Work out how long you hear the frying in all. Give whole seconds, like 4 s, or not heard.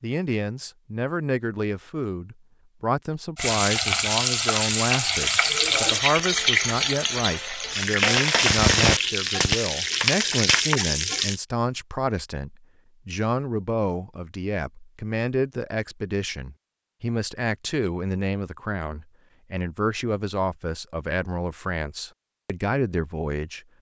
8 s.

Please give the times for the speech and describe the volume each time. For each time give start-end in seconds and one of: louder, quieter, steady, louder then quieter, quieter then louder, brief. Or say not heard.
0.0-23.6 steady.